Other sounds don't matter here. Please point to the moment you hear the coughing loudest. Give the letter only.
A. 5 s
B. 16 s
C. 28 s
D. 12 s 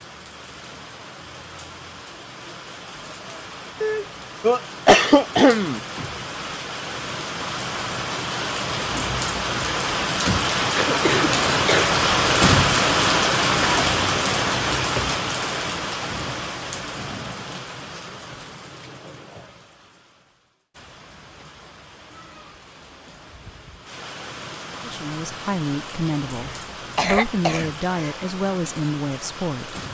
A.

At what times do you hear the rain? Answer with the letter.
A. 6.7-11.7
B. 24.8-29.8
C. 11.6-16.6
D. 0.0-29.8
D.